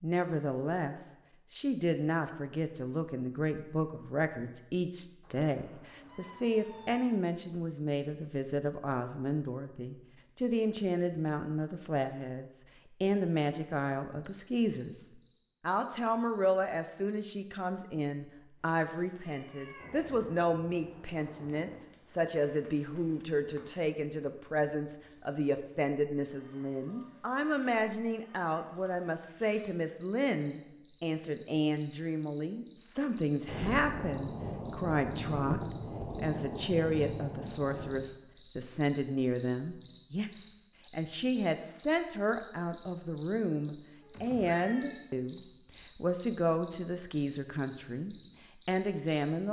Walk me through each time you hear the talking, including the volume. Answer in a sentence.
You can hear the talking from 0.0 to 49.4 s, at a steady volume.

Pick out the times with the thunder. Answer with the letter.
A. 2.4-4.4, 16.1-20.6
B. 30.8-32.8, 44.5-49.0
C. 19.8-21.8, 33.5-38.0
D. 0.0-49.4
C.